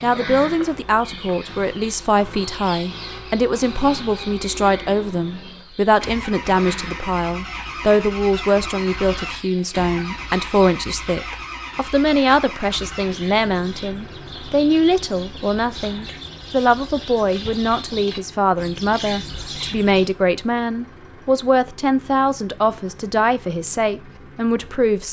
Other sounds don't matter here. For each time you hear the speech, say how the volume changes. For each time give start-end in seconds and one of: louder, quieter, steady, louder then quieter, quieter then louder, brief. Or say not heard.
0.0-25.0 steady.